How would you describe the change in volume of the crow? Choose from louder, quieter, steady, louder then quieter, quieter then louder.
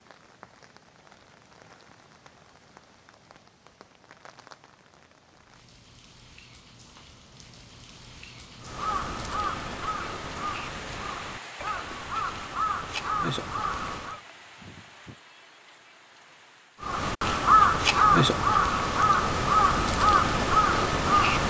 louder.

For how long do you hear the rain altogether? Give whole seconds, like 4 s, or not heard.
17 s.